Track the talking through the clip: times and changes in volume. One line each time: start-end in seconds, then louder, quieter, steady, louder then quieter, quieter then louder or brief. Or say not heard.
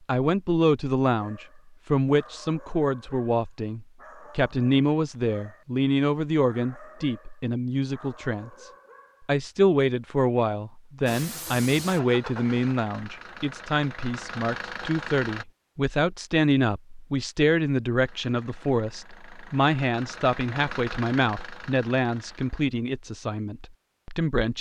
0.1-24.5 steady.